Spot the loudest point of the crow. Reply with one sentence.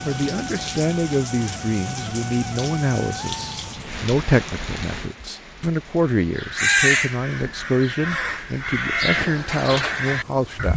The loudest moment of the crow is at 7 seconds.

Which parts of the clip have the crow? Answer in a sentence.
The crow can be heard from 6.3 to 10.7 s.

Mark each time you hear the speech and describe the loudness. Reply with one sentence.
You can hear the speech from 0.0 to 10.7 s, at a steady volume.